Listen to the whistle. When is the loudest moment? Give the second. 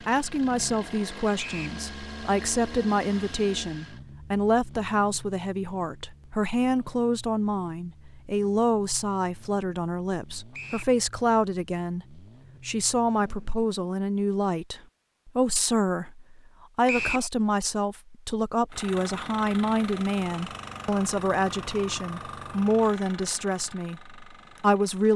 17 s.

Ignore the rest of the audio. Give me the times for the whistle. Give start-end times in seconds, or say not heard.
1.4-1.8, 10.5-10.9, 16.9-17.3.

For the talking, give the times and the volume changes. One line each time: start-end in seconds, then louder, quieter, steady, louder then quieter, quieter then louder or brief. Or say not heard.
0.0-25.1 steady.